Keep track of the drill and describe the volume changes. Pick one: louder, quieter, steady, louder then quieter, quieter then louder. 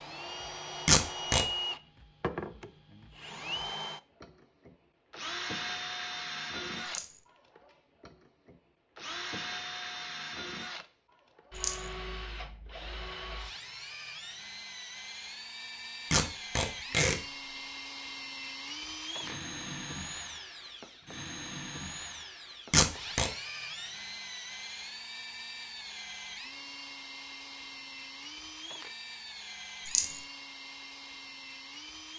quieter.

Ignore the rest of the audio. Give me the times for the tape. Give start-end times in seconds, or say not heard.
0.8-1.4, 16.1-17.1, 22.7-23.3.